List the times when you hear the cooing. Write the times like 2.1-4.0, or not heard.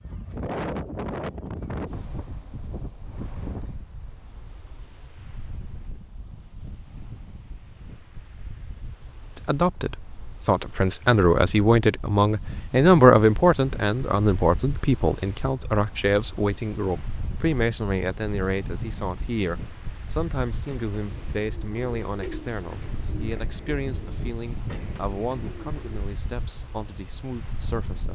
20.5-26.1.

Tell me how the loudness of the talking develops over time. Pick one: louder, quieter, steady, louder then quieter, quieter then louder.
quieter.